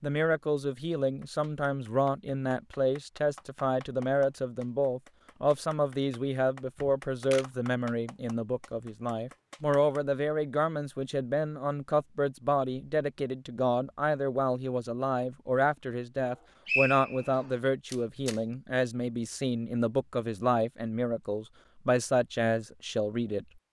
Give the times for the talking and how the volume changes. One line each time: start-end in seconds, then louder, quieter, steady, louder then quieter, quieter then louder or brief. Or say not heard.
0.0-23.4 steady.